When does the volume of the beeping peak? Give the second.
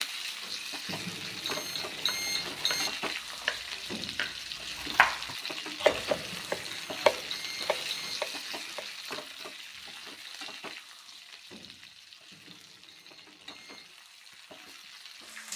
2 s.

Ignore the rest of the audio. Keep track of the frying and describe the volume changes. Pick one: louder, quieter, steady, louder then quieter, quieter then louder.
quieter.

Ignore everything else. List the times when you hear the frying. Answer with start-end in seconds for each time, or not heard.
0.0-15.5.